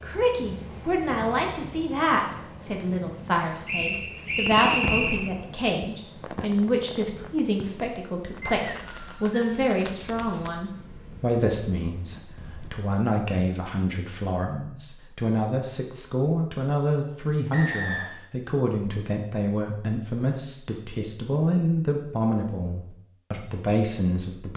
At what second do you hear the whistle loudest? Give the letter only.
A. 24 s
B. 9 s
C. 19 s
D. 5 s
D.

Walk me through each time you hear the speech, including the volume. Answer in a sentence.
You can hear the speech from 0.0 to 24.5 s, at a steady volume.